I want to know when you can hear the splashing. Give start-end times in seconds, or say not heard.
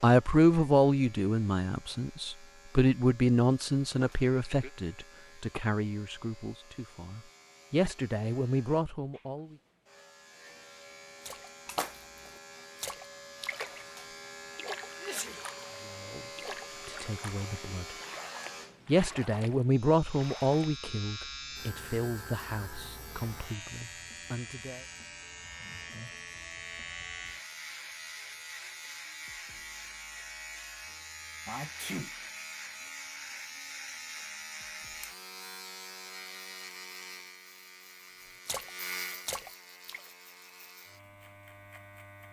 11.2-13.9, 14.6-20.8, 38.5-40.1.